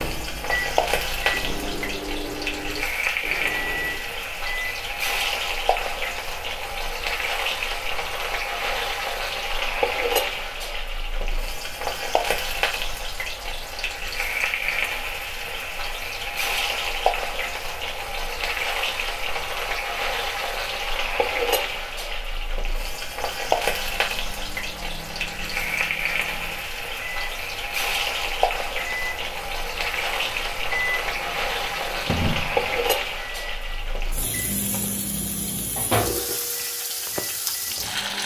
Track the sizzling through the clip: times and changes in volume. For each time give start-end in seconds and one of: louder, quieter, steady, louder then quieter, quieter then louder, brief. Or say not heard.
0.0-38.2 steady.